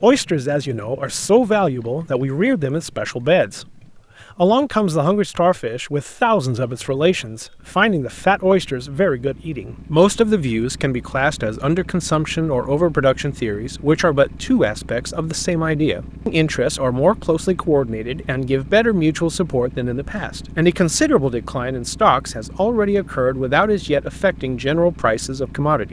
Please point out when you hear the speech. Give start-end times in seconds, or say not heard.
0.0-3.6, 4.3-25.8.